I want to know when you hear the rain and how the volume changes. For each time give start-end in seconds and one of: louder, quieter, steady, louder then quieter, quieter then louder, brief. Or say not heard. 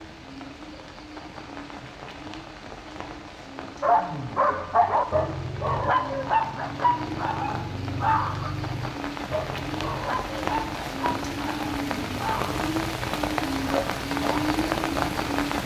0.0-15.6 louder.